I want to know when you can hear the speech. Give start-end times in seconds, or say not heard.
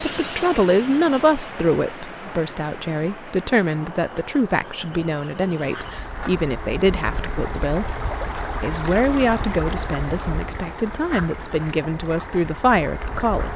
0.0-8.0, 8.6-13.5.